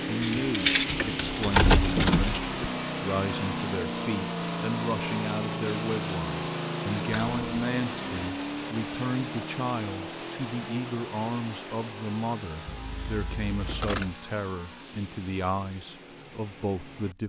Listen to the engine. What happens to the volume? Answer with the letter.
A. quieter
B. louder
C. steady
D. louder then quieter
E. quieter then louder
A.